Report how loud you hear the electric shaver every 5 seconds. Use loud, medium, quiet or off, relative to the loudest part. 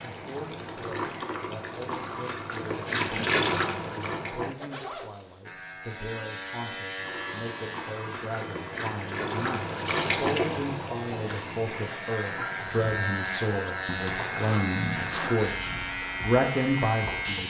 off, medium, loud, loud.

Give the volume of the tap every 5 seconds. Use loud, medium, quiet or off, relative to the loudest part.
loud, loud, loud, medium.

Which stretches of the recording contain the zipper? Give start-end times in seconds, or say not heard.
4.5-5.5, 14.1-15.5.